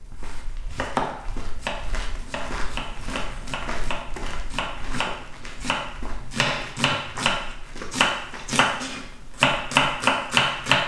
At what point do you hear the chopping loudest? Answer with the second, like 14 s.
10 s.